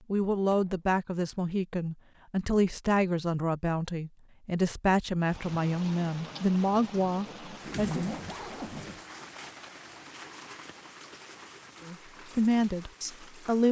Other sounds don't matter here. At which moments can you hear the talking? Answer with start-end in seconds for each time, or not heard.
0.1-8.1, 11.8-13.6.